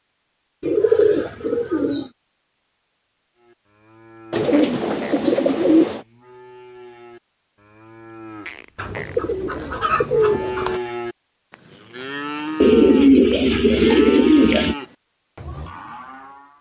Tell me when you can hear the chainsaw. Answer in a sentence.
You can't hear the chainsaw here.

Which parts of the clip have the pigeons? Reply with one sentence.
The pigeons can be heard from 0.6 to 2.1 s, from 4.3 to 6.0 s, from 8.8 to 10.8 s and from 12.6 to 14.8 s.